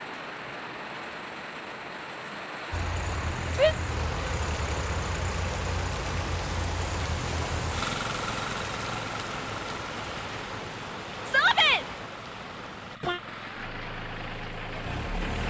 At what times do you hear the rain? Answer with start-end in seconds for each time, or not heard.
0.0-15.4.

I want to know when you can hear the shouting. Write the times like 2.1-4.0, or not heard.
3.5-4.3, 11.2-11.8.